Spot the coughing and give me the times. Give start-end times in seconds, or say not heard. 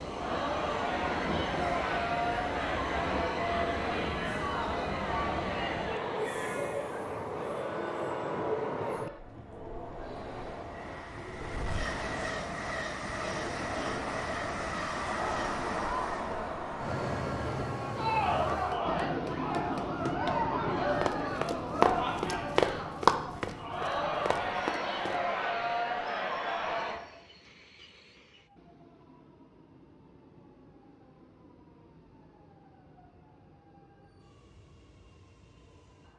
not heard.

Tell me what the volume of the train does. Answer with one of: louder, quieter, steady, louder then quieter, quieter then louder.
quieter.